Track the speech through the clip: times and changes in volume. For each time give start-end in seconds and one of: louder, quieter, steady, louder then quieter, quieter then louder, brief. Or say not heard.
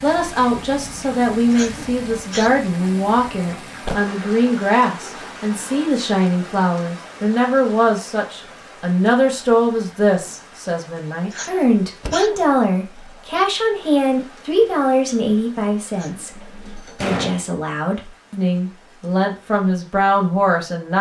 0.0-20.9 steady.